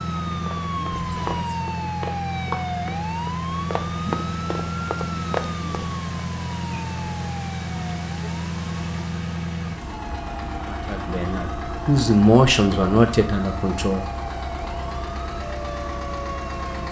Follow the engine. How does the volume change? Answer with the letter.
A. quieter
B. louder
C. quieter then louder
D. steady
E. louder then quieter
D.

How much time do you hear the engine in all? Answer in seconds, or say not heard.
17 s.